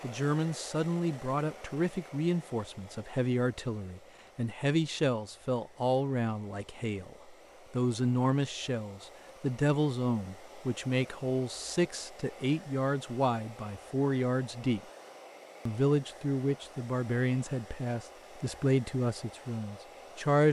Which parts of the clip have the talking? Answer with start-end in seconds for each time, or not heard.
0.0-14.8, 15.7-20.4.